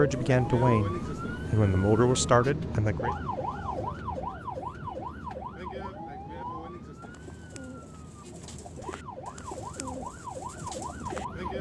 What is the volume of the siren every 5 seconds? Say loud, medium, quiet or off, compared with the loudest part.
loud, medium, loud.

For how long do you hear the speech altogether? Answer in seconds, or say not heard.
3 s.